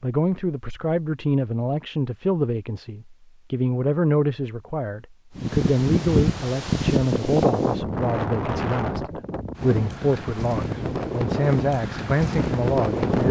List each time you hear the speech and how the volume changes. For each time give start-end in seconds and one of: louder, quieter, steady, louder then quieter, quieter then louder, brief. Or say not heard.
0.0-13.2 steady.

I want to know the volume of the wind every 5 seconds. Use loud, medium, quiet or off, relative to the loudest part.
off, loud, loud.